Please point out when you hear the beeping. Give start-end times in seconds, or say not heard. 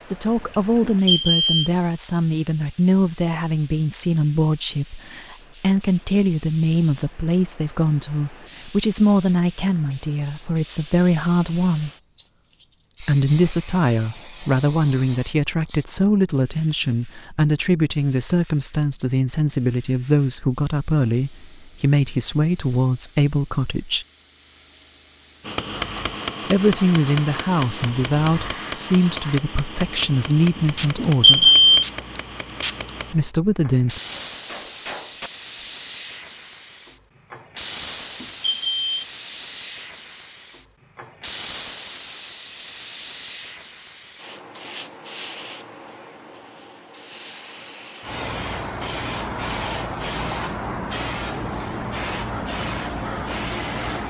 0.8-1.5, 30.9-31.9, 38.2-39.0.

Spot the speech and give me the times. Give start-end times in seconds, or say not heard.
0.0-11.9, 13.0-24.1, 26.5-31.5, 33.1-34.0.